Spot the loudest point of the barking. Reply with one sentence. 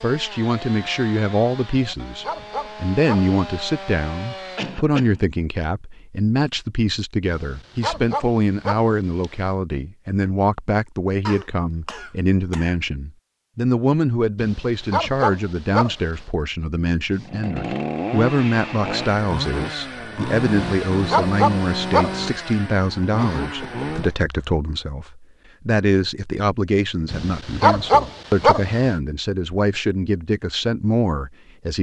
The loudest moment of the barking is at 28 seconds.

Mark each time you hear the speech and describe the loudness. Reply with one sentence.
You can hear the speech from 0.0 to 31.7 s, at a steady volume.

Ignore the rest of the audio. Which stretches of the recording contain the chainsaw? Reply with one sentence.
The chainsaw can be heard from 0.0 to 4.8 s and from 17.1 to 24.1 s.